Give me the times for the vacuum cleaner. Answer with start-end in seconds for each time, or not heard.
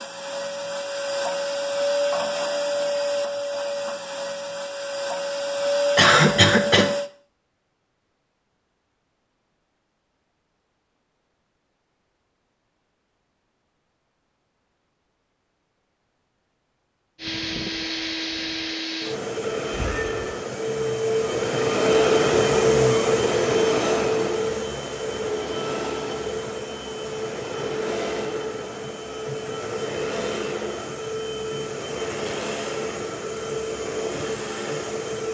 0.0-7.1, 17.1-35.2.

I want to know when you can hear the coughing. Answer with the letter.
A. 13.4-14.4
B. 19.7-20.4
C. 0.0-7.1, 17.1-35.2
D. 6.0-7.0
D.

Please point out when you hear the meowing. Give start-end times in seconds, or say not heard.
19.7-20.4.